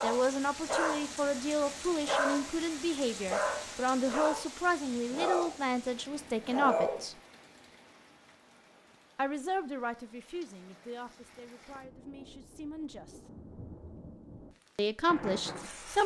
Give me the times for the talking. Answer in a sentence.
You can hear the talking from 0.0 to 7.2 s, from 9.2 to 13.2 s and from 14.8 to 16.0 s.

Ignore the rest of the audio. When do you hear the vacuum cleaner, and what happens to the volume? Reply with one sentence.
You can't hear the vacuum cleaner here.